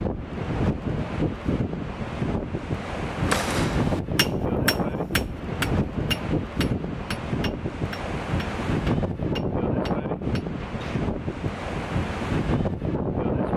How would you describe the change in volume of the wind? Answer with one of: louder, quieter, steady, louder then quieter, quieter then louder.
steady.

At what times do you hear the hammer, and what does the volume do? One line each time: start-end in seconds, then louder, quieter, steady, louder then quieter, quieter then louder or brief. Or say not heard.
3.2-11.1 quieter.